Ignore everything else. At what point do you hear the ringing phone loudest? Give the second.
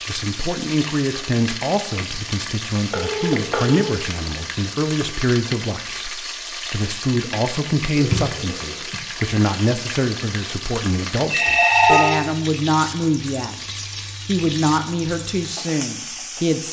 12 s.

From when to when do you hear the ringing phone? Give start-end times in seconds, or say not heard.
2.9-4.0, 8.0-9.0, 11.3-12.2.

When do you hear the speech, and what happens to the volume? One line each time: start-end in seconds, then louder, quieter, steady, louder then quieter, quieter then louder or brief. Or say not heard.
0.1-13.6 steady
14.2-16.6 brief.